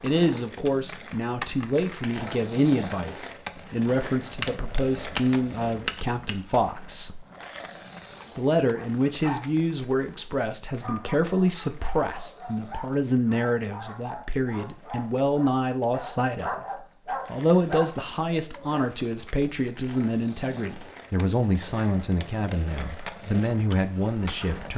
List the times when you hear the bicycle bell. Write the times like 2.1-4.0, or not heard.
4.4-6.5.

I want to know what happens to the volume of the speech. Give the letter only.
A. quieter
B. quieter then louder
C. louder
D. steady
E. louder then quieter
D.